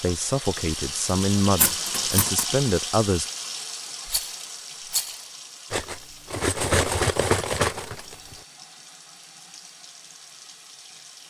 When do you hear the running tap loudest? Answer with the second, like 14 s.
2 s.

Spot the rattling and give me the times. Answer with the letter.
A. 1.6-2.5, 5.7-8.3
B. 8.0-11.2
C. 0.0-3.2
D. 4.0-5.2
D.